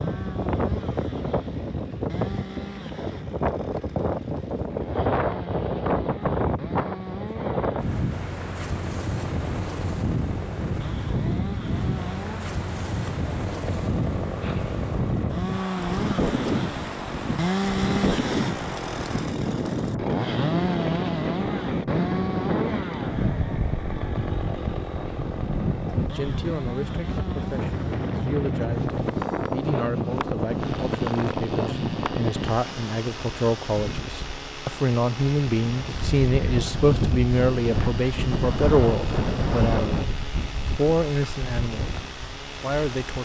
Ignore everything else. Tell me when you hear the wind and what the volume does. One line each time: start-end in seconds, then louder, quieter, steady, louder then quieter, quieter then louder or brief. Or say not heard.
0.0-43.2 steady.